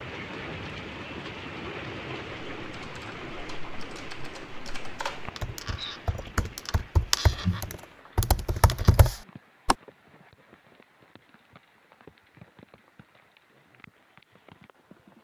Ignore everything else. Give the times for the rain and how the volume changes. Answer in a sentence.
You can hear the rain from 0.0 to 15.1 s, getting quieter.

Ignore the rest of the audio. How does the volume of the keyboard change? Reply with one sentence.
The volume of the keyboard goes up.